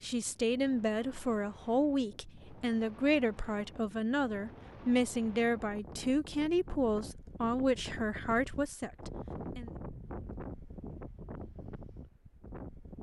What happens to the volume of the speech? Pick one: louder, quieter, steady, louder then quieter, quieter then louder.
steady.